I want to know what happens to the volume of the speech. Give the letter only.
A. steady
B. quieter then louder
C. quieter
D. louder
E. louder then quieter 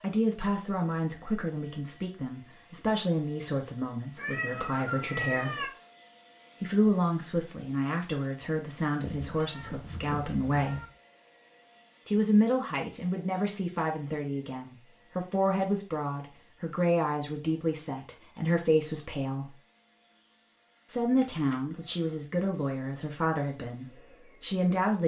A.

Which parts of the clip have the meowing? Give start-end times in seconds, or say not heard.
4.2-5.7, 9.0-10.8, 21.2-22.2.